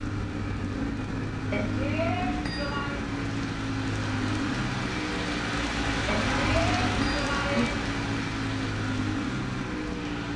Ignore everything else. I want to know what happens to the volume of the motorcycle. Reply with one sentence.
The loudness of the motorcycle stays about the same.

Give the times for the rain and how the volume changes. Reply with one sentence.
You can hear the rain from 0.0 to 10.3 s, getting louder then quieter.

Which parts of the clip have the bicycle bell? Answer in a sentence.
The bicycle bell can be heard from 1.5 to 3.0 s and from 6.0 to 7.8 s.